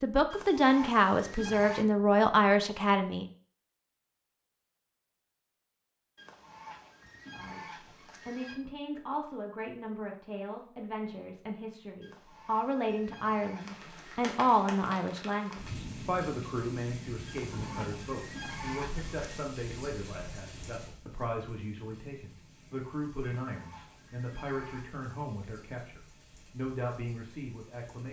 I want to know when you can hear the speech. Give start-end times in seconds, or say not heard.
0.0-3.2, 7.3-28.0.